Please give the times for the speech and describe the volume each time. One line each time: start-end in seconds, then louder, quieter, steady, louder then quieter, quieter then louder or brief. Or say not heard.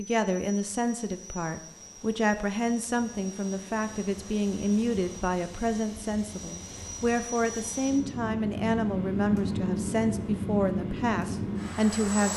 0.0-12.3 steady.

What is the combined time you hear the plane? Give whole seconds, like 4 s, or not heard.
12 s.